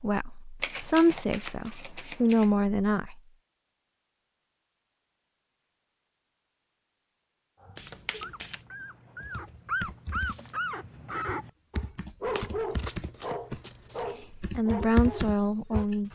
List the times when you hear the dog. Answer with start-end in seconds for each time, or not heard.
7.6-15.8.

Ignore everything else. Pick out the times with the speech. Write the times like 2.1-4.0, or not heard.
0.0-3.2, 14.2-16.0.